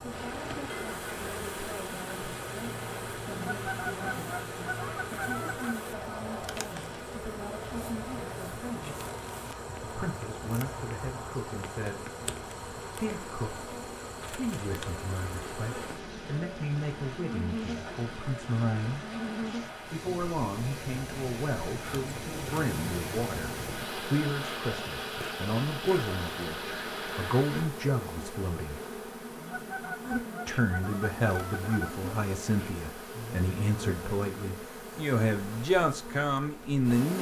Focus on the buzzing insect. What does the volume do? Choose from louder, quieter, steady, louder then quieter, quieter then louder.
steady.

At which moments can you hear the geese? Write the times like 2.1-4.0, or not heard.
3.5-5.8, 29.3-31.9.